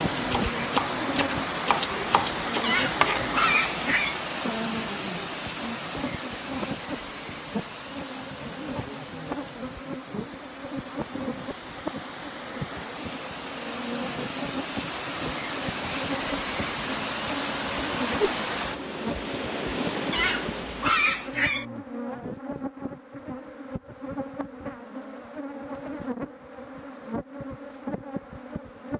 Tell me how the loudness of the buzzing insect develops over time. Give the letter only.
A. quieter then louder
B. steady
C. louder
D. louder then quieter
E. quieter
B.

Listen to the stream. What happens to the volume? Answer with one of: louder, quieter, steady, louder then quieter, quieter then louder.
quieter then louder.